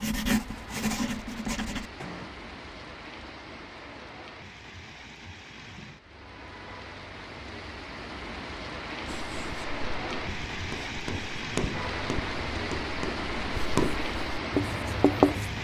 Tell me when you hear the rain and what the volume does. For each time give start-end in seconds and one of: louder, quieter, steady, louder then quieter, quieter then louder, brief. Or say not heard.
0.2-15.5 louder.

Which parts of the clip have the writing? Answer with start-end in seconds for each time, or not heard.
0.0-2.3, 9.1-15.5.